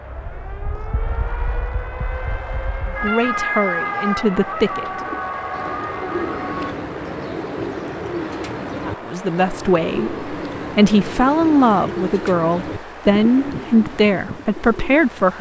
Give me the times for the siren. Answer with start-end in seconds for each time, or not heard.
0.0-6.8.